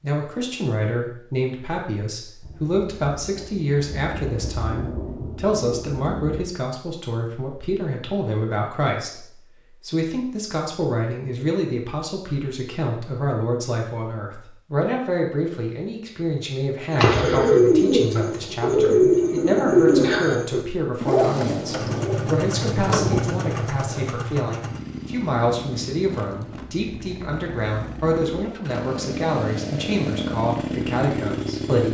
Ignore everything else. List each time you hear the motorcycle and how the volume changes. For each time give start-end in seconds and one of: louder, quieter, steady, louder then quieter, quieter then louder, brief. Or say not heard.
21.8-31.8 quieter then louder.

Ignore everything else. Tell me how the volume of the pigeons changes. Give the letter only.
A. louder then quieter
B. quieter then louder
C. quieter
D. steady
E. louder
C.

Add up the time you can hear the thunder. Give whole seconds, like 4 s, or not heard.
6 s.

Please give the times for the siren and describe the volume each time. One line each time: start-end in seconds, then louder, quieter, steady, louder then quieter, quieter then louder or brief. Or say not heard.
not heard.